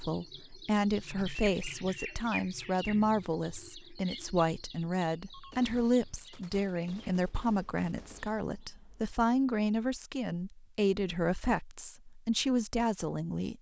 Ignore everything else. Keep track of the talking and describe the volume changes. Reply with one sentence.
The volume of the talking stays about the same.